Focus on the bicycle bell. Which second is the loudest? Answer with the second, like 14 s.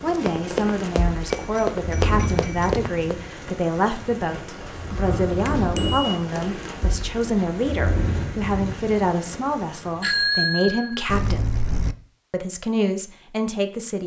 10 s.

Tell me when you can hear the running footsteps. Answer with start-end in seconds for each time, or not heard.
0.1-3.1.